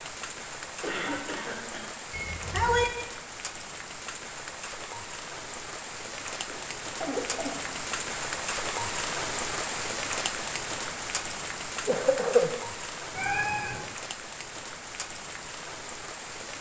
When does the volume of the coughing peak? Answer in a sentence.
The loudest moment of the coughing is at 12 seconds.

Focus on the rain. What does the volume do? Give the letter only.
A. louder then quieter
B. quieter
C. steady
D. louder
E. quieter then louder
A.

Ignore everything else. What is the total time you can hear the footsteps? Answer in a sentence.
You can't hear the footsteps here.